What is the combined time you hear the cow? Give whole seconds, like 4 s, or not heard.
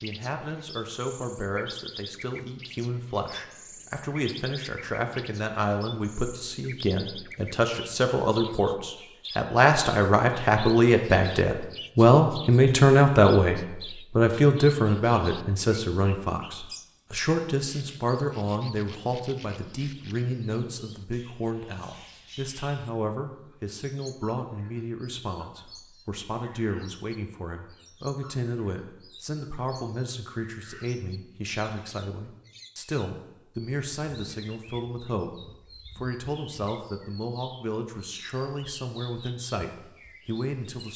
not heard.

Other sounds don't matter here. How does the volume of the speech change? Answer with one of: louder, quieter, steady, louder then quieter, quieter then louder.
louder then quieter.